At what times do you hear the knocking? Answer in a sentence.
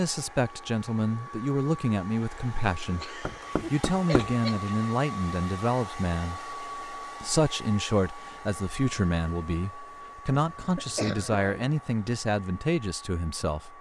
You can hear the knocking from 3.2 to 4.3 s.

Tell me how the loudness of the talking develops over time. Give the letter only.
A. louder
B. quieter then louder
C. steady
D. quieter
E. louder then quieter
C.